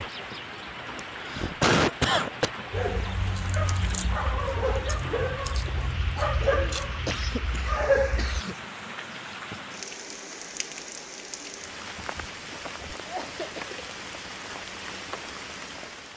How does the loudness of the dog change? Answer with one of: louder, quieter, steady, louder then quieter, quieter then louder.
louder.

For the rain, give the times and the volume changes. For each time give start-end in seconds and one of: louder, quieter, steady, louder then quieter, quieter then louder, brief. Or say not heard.
0.0-16.1 steady.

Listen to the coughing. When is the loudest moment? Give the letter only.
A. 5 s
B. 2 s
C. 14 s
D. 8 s
B.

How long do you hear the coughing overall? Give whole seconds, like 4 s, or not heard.
4 s.